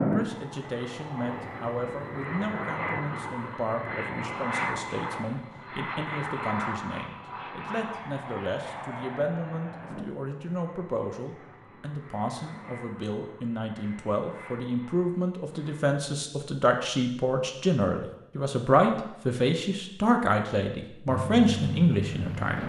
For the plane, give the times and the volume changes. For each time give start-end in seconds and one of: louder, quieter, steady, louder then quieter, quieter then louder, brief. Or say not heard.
0.0-15.8 quieter
21.1-22.6 brief.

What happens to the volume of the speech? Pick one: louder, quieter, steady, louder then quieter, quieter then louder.
louder.